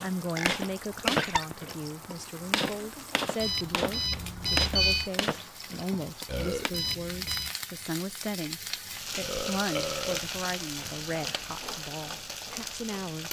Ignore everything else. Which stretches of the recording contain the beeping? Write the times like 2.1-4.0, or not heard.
3.4-5.1, 6.7-7.5.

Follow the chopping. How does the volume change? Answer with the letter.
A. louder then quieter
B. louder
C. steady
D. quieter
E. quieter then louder
D.